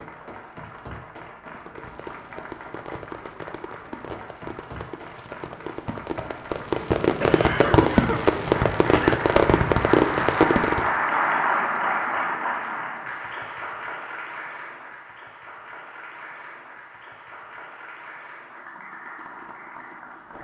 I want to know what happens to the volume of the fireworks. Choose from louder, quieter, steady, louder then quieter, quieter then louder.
louder.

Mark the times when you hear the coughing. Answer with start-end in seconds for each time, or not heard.
7.2-9.2.